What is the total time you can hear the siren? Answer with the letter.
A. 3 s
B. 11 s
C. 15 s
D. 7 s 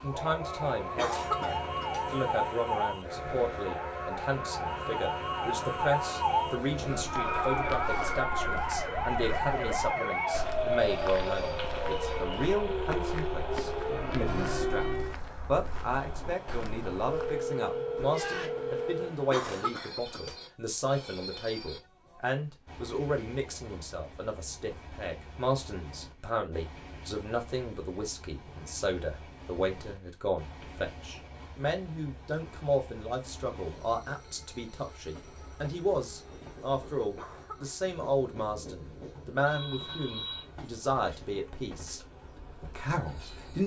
C.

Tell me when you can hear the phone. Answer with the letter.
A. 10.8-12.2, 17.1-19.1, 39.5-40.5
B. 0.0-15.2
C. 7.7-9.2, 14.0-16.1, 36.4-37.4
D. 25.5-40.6
A.